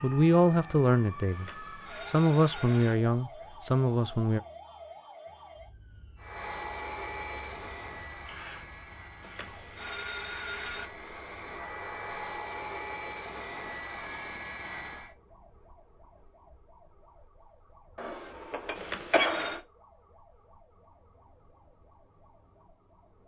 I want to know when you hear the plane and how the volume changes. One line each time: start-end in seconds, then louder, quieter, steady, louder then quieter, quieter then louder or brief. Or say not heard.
6.2-15.2 quieter then louder.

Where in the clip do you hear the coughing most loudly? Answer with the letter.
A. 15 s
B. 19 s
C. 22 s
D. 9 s
B.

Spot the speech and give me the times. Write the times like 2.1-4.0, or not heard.
0.0-4.4.